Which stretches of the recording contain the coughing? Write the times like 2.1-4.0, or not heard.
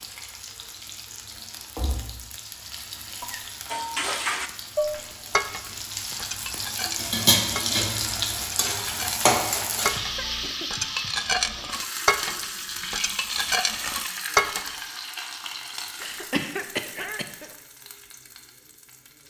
3.1-3.6, 9.9-10.9, 16.0-17.5.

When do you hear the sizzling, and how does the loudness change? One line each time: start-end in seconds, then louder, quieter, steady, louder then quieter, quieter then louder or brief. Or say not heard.
0.0-19.2 louder then quieter.